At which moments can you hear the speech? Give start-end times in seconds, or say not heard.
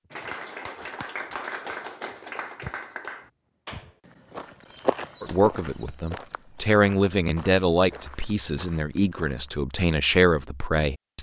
5.2-11.1.